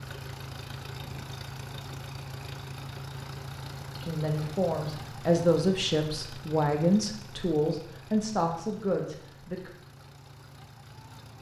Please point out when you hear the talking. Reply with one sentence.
You can hear the talking from 4.0 to 9.7 s.